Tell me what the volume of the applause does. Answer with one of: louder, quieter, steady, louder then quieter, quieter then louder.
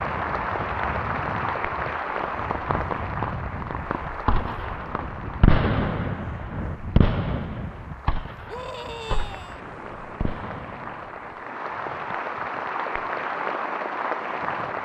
quieter then louder.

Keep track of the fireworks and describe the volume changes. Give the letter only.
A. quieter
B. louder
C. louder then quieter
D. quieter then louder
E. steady
C.